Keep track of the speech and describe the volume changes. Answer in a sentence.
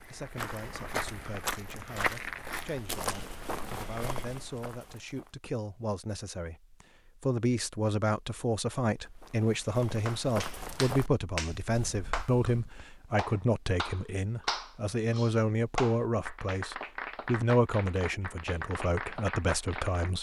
The loudness of the speech goes up.